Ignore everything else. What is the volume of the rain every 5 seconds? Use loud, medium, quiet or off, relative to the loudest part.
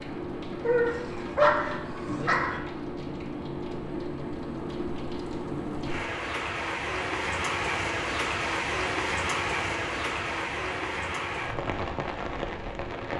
medium, loud, loud.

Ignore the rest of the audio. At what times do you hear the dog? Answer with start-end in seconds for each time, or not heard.
0.6-2.6.